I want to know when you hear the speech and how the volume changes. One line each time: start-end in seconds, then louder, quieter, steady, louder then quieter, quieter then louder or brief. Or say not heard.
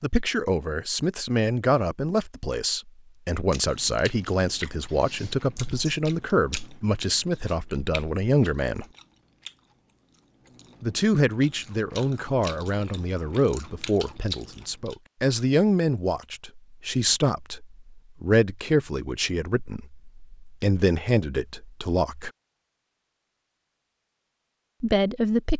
0.0-8.8 steady
10.8-22.3 steady
24.8-25.5 brief.